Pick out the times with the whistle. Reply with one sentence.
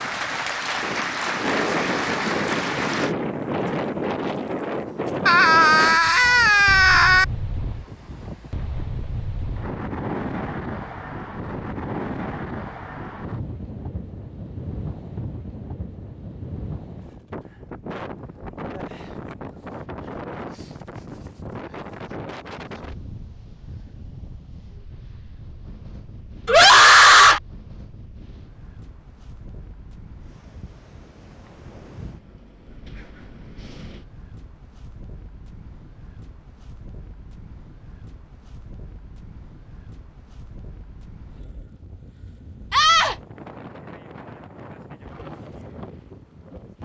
You can't hear the whistle here.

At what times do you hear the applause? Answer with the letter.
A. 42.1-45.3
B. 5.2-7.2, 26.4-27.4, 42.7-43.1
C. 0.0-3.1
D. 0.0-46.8
C.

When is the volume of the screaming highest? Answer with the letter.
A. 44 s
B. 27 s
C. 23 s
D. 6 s
B.